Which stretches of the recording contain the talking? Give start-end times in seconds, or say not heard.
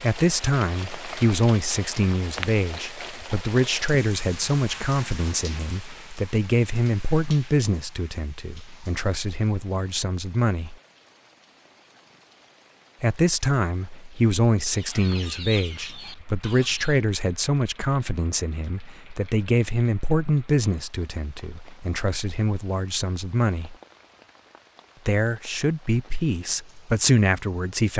0.0-10.8, 13.0-23.8, 25.1-27.9.